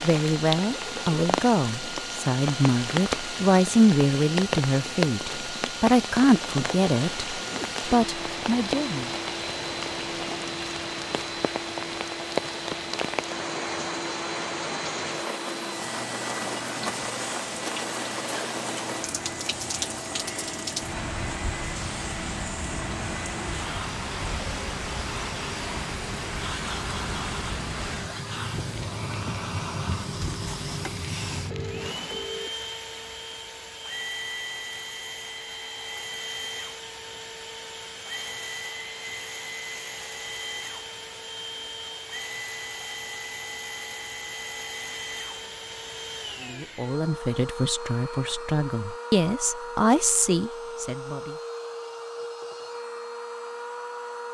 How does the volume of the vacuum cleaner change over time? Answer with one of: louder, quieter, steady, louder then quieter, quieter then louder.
steady.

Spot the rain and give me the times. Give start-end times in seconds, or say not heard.
0.0-32.3.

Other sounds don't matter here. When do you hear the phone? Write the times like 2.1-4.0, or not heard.
31.4-32.7.